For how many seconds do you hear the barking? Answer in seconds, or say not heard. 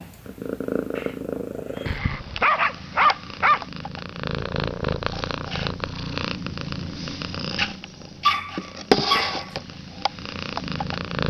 3 s.